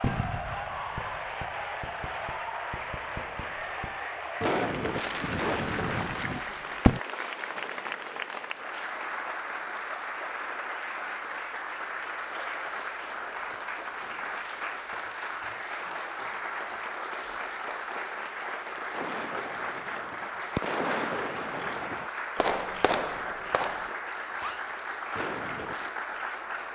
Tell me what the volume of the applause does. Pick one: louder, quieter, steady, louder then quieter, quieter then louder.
steady.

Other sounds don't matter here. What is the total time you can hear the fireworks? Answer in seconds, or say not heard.
14 s.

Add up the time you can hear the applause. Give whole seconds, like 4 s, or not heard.
27 s.